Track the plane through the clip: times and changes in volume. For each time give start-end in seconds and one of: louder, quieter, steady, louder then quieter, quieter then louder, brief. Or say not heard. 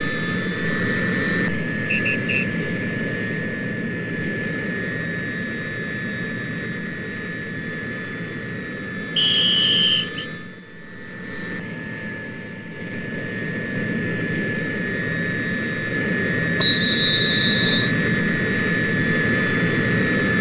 0.0-20.3 quieter then louder.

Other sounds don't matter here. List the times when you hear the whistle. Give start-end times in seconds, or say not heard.
1.9-2.5, 9.2-10.2, 16.6-17.9.